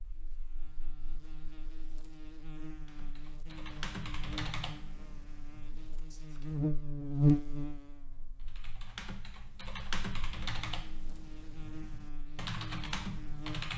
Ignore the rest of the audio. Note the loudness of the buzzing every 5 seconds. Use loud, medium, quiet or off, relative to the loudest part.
quiet, loud, quiet.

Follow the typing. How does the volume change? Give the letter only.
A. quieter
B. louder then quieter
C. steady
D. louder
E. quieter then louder
E.